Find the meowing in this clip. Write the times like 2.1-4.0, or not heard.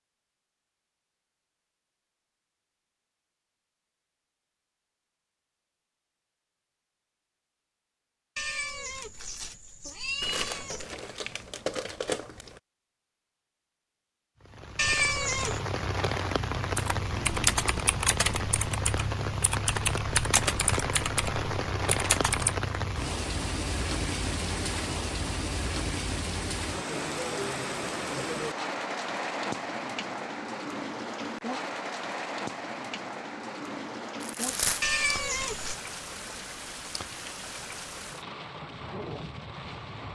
8.3-10.8, 14.8-15.6, 34.8-35.8.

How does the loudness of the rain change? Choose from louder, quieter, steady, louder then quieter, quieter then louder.
quieter.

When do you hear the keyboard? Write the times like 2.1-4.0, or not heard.
16.8-22.6.